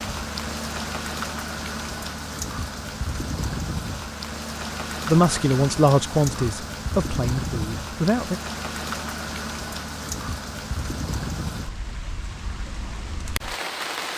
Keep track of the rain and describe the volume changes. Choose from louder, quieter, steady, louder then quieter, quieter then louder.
steady.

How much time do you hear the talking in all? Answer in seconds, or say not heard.
3 s.